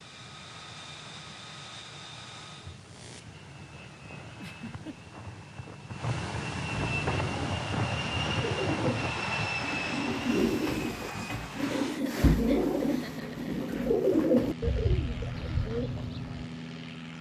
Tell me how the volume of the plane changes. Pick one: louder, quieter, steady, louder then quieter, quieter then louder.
louder then quieter.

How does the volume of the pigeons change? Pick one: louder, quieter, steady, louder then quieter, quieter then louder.
louder.